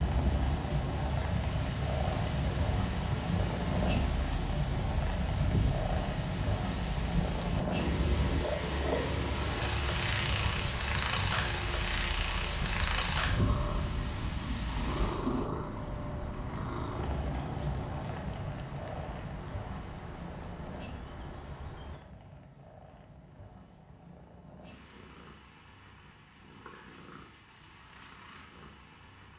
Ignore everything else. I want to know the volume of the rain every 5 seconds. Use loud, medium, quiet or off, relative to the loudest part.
loud, loud, loud, medium, medium, off.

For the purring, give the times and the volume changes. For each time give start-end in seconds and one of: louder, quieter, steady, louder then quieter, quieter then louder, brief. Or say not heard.
0.0-29.3 quieter.